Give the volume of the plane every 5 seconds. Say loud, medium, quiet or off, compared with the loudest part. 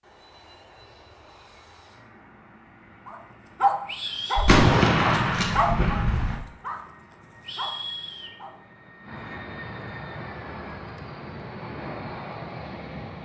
quiet, medium, loud.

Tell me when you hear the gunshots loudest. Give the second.
5 s.